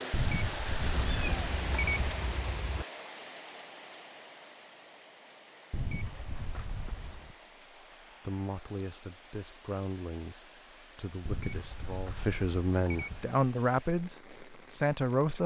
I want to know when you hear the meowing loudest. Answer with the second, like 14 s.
1 s.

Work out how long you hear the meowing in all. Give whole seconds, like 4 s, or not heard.
2 s.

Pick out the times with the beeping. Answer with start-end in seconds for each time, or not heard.
0.1-2.1, 5.7-7.3, 11.2-13.2.